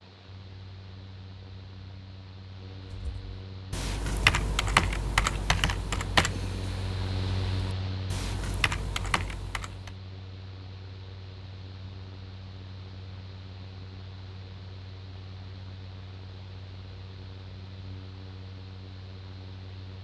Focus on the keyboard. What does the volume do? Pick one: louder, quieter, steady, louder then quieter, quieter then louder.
quieter then louder.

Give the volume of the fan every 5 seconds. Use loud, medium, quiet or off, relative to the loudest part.
medium, loud, medium, medium.